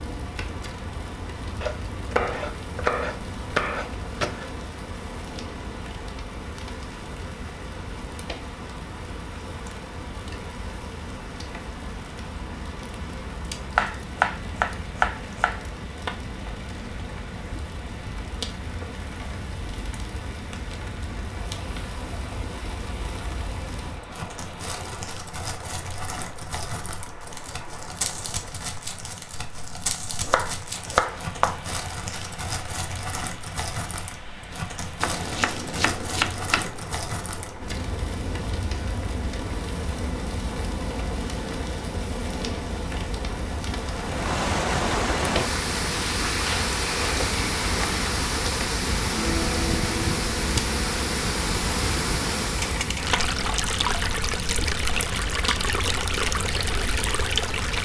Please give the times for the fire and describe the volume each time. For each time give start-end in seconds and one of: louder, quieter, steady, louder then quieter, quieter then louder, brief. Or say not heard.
0.0-57.7 louder.